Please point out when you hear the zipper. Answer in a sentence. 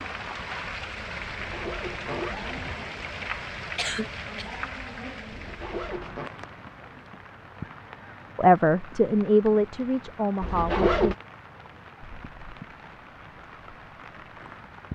You can hear the zipper from 1.2 to 2.8 s, from 5.3 to 6.3 s and from 10.4 to 11.2 s.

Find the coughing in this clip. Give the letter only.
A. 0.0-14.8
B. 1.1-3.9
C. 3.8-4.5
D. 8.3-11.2
C.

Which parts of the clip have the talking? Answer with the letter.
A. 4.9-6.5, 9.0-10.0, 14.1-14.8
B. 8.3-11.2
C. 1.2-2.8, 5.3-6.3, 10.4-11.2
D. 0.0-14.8
B.